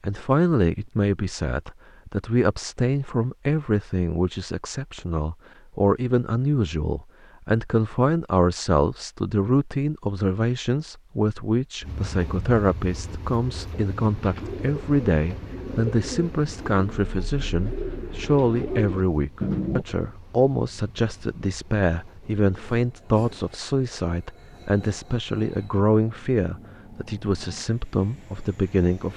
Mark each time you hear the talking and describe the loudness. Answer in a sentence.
You can hear the talking from 0.0 to 29.1 s, at a steady volume.